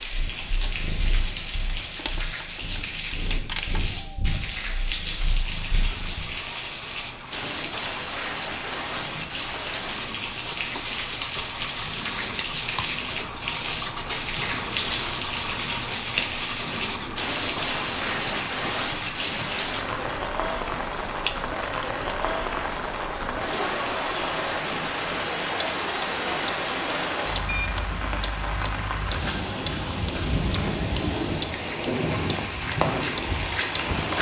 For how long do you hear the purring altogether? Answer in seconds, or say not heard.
6 s.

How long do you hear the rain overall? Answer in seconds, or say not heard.
34 s.